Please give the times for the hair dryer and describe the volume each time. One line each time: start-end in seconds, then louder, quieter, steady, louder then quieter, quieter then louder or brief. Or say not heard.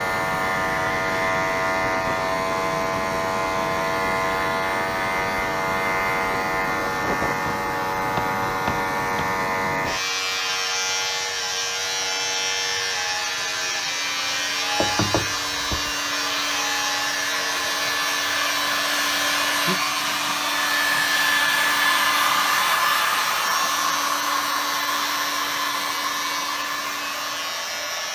0.0-28.1 louder.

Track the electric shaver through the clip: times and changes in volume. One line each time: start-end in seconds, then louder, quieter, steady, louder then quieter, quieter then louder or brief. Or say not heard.
0.0-28.1 quieter.